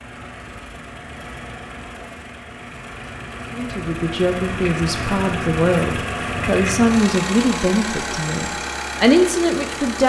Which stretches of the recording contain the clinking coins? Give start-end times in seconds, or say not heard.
not heard.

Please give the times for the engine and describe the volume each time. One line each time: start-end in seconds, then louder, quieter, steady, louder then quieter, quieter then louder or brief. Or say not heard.
0.0-10.0 louder.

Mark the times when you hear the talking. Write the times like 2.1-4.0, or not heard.
3.5-10.0.